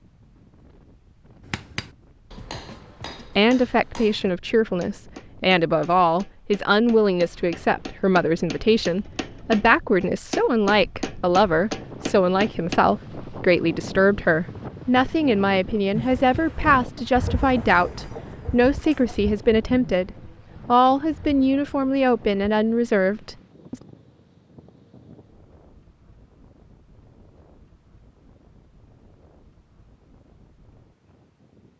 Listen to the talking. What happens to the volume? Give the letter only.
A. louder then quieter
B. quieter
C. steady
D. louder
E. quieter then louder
C.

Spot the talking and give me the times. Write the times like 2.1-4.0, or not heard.
3.4-23.8.